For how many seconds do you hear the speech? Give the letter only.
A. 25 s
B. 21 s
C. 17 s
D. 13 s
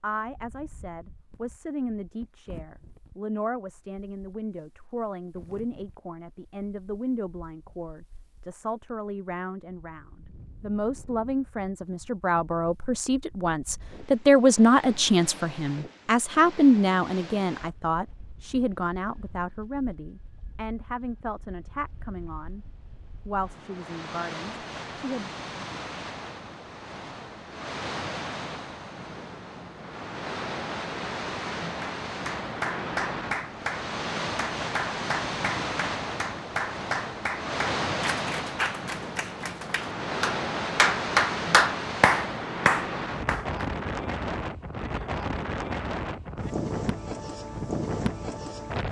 A.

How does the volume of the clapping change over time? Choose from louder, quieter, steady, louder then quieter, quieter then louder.
louder.